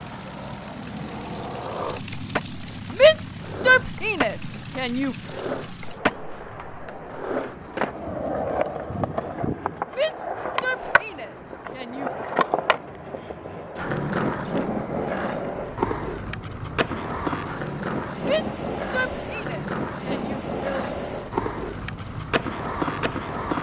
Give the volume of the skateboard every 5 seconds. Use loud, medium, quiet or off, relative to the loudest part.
medium, loud, loud, loud, loud.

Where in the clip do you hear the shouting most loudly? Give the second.
3 s.